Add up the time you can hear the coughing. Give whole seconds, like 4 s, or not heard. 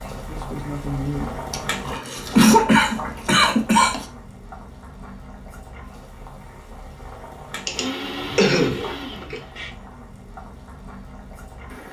4 s.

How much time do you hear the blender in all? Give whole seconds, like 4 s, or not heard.
2 s.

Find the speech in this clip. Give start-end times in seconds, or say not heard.
0.1-1.6.